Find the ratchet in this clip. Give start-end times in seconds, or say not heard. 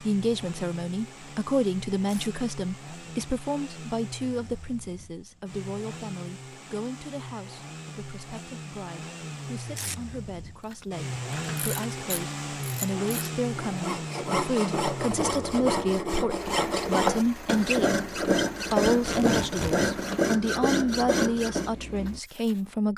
10.7-13.3.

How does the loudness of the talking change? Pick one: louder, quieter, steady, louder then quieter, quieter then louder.
quieter then louder.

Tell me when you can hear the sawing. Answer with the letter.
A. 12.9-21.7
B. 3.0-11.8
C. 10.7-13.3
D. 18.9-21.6
A.